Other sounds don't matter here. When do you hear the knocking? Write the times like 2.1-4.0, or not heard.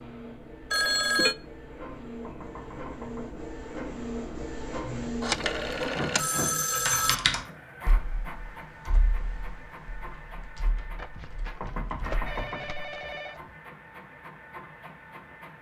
2.2-3.4, 11.6-12.9.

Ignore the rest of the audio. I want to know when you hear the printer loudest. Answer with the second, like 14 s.
6 s.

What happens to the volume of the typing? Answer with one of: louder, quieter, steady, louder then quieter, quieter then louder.
quieter.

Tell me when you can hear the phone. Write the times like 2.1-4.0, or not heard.
0.7-1.4, 5.2-7.2, 10.9-13.6.